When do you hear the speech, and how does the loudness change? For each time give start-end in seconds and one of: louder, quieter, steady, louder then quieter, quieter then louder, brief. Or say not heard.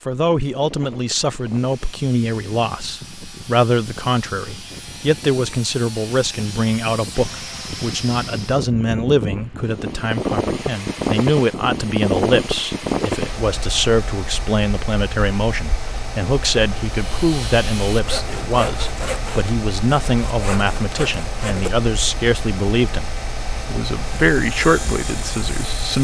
0.1-25.9 steady.